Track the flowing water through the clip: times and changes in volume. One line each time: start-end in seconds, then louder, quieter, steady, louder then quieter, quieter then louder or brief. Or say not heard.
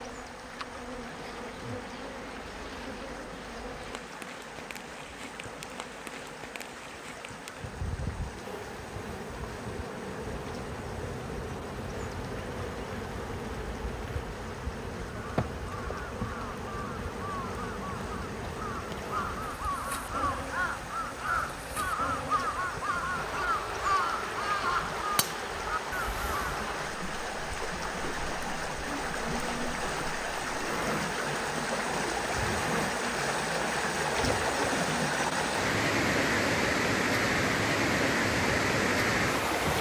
0.0-39.7 louder.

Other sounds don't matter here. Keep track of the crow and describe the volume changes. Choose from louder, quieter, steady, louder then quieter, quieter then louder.
louder.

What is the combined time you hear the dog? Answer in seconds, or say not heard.
not heard.